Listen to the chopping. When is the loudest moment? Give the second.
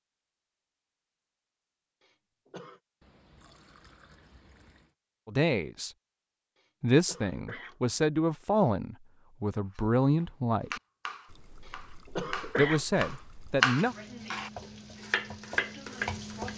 14 s.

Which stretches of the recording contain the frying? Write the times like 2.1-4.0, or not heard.
13.8-16.5.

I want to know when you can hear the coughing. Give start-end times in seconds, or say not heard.
2.0-2.8, 6.5-8.1, 11.7-13.2.